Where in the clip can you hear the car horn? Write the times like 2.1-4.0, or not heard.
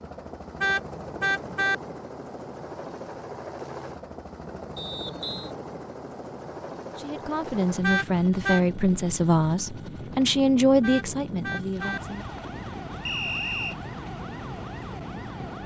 0.6-1.8, 7.8-8.6, 10.8-12.0.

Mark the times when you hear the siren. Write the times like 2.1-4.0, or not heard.
11.8-15.6.